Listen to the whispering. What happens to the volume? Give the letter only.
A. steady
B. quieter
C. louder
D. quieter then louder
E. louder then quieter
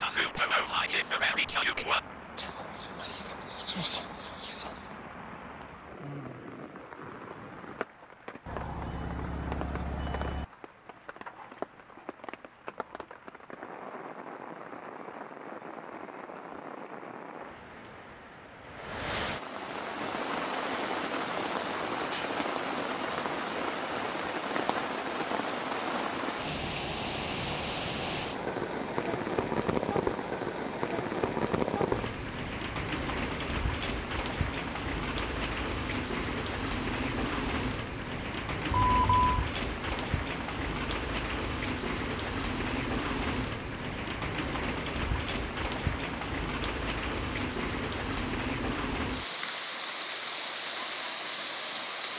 D.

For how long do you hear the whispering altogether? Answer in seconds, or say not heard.
5 s.